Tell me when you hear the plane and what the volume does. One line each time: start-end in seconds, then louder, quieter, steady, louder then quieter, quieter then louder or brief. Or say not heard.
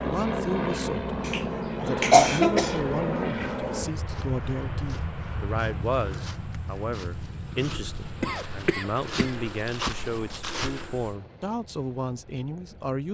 0.0-13.0 quieter.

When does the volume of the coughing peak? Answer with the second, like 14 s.
2 s.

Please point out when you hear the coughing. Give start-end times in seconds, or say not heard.
1.2-2.8, 8.2-9.4.